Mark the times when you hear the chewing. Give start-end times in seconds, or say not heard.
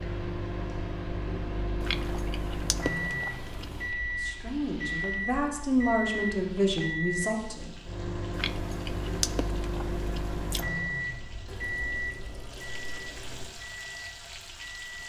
1.8-3.9, 8.3-10.7.